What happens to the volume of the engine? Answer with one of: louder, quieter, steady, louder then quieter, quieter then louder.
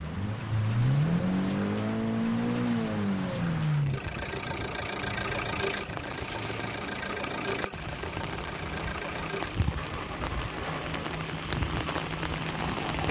quieter.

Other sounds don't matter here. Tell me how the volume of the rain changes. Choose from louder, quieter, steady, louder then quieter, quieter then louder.
louder.